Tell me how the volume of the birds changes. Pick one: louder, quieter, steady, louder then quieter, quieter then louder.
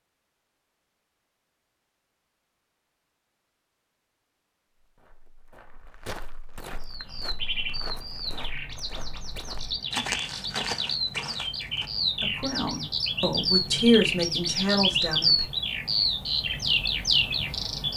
louder.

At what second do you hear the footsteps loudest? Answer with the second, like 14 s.
10 s.